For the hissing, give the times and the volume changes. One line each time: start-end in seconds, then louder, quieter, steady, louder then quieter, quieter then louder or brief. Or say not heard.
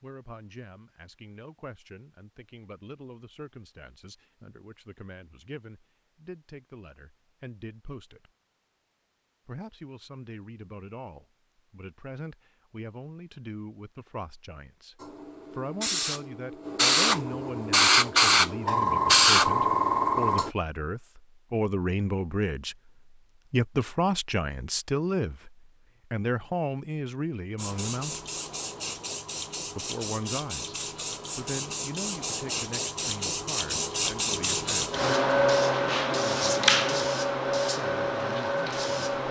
15.0-20.5 louder
27.6-39.2 louder.